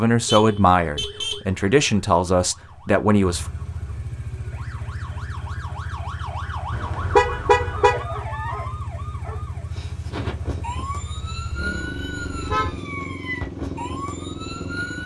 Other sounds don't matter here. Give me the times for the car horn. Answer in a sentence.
The car horn can be heard from 0.2 to 1.4 s, from 6.7 to 8.1 s and from 11.2 to 12.8 s.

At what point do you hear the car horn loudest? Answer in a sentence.
The loudest moment of the car horn is at 7 seconds.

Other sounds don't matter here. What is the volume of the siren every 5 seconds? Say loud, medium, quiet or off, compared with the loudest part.
quiet, loud, loud.